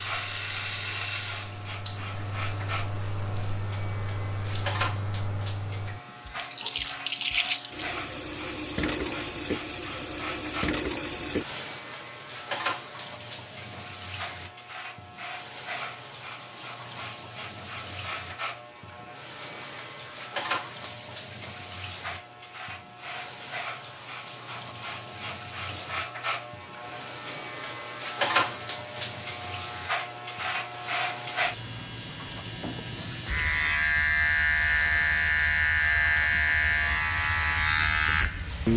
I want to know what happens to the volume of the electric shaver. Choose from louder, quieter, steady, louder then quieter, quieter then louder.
louder.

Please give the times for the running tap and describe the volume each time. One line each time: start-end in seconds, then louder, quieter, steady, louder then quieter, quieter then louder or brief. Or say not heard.
0.0-38.7 quieter.